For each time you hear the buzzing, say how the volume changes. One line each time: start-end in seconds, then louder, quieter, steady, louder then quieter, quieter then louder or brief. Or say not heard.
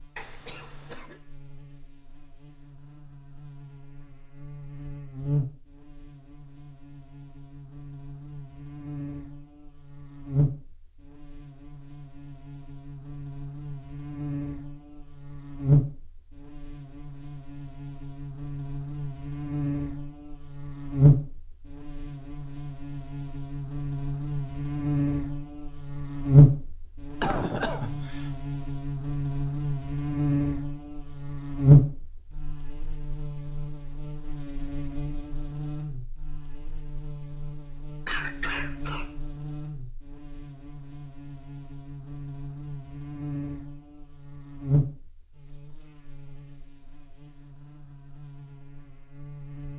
0.0-49.7 louder then quieter.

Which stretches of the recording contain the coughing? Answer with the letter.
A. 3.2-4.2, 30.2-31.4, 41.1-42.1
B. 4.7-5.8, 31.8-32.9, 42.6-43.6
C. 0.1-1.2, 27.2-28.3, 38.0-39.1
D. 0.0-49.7
C.